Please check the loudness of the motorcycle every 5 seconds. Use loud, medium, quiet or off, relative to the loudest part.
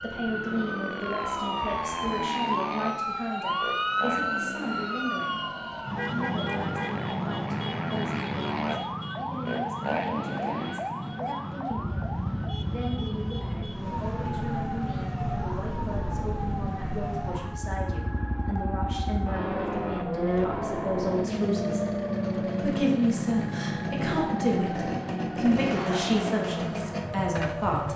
medium, medium, medium, medium, loud, loud.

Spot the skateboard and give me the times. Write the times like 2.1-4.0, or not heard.
not heard.